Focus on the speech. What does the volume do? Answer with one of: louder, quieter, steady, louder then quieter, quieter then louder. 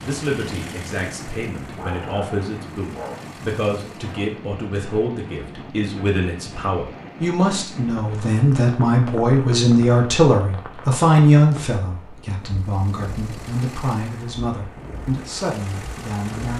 louder then quieter.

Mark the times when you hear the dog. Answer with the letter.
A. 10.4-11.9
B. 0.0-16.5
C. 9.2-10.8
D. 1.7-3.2
D.